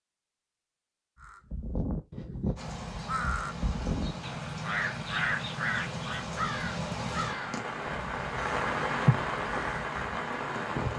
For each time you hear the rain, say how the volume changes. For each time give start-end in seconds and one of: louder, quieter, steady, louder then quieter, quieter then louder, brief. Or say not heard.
2.5-10.9 louder.